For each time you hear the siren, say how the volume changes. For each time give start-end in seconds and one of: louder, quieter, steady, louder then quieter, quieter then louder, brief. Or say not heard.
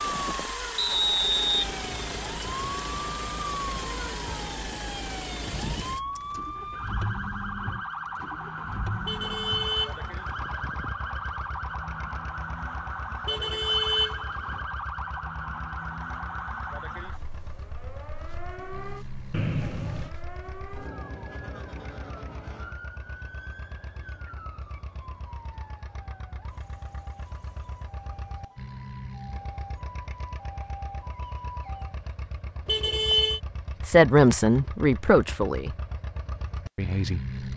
0.0-31.9 quieter.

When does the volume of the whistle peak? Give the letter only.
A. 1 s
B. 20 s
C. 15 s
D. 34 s
A.